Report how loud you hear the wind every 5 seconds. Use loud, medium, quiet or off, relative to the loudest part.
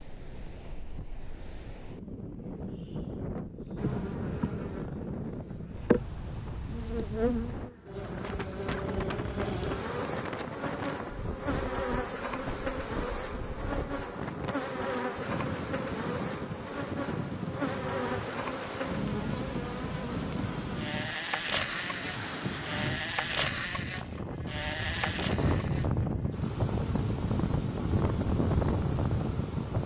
medium, medium, medium, medium, medium, loud.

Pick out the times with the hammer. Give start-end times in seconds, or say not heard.
not heard.